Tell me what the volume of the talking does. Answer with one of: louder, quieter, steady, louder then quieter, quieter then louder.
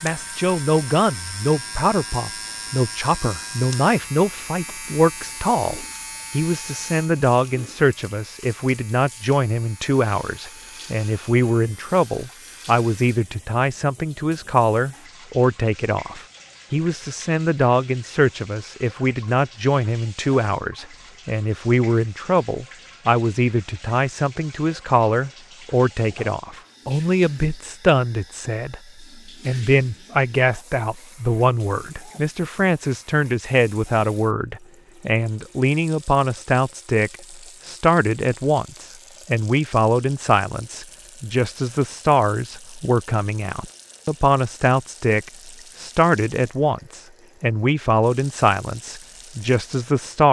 steady.